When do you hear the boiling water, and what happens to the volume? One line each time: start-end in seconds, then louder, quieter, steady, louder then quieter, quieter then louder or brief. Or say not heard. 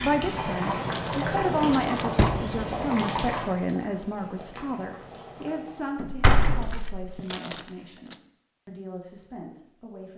0.0-6.0 quieter.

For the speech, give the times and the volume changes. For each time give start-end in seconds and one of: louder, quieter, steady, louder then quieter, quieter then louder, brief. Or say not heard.
0.0-10.1 quieter.